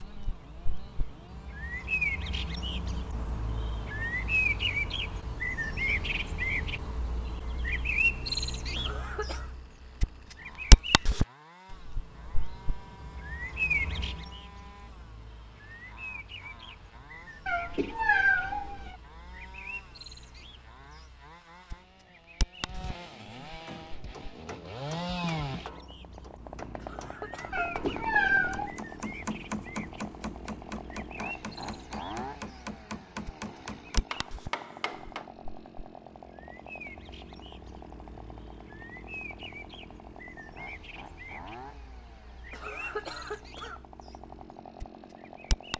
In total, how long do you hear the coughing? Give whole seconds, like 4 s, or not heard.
3 s.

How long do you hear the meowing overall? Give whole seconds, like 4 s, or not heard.
3 s.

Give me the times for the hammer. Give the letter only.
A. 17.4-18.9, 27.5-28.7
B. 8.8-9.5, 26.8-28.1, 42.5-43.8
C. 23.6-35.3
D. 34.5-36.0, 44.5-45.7
C.